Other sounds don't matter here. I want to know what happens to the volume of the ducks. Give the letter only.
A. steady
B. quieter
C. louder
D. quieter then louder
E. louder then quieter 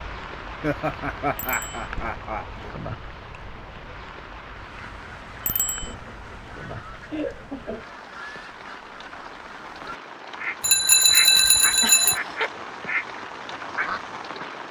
C.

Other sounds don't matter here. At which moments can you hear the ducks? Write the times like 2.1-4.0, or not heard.
4.5-14.4.